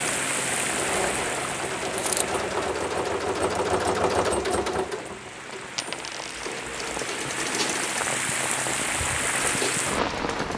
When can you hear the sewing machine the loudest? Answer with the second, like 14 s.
4 s.